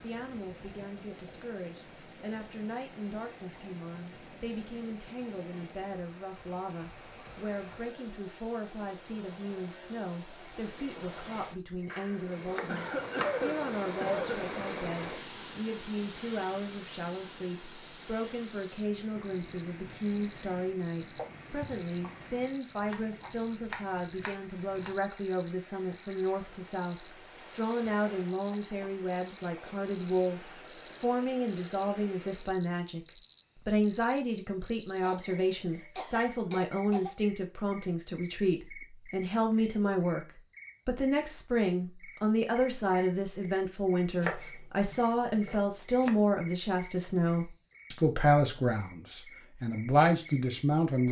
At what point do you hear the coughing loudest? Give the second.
13 s.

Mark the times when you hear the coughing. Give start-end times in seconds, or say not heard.
12.7-14.4, 21.1-22.2, 35.0-37.1.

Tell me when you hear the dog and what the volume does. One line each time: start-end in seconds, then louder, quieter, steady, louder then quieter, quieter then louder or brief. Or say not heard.
not heard.